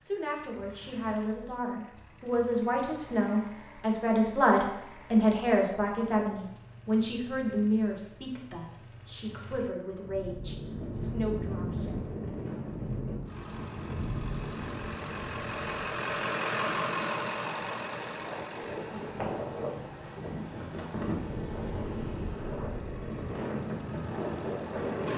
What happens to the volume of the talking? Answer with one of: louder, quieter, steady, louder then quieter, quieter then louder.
louder then quieter.